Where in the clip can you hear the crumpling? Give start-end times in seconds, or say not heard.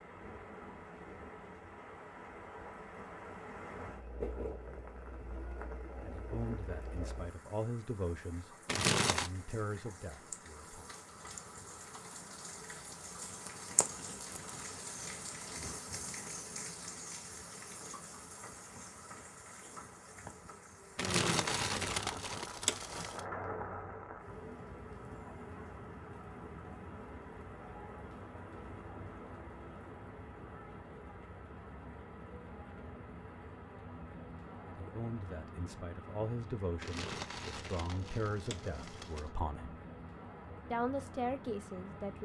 8.7-9.3, 20.9-23.2, 36.8-39.3.